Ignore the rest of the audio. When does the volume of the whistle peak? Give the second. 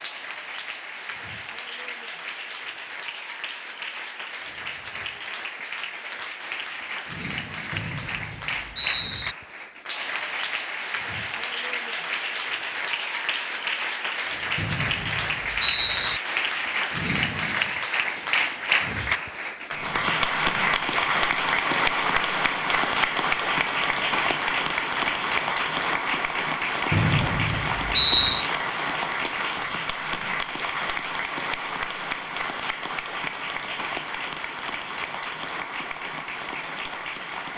28 s.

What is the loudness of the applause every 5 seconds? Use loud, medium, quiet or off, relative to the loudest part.
quiet, medium, medium, loud, loud, loud, medium, medium.